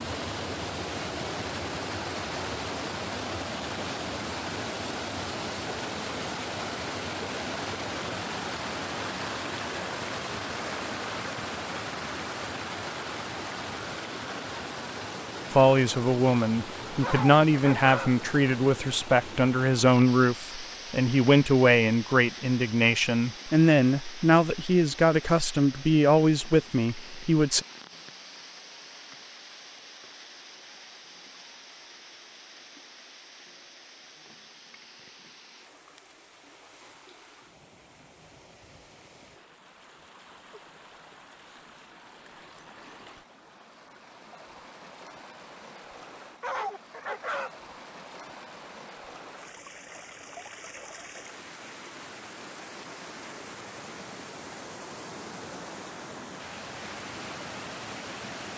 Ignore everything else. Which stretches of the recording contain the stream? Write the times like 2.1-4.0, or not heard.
0.0-58.5.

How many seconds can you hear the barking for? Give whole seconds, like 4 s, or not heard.
2 s.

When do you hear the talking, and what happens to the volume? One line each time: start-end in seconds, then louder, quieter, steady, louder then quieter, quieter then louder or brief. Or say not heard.
15.5-27.6 steady.